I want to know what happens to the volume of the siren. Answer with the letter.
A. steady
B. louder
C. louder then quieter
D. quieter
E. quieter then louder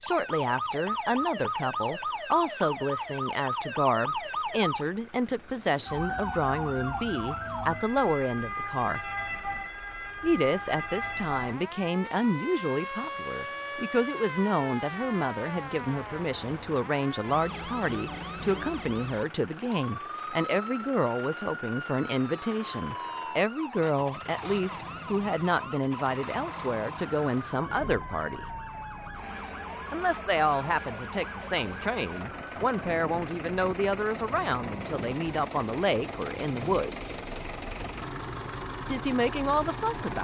D.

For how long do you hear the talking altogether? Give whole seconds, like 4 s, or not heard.
36 s.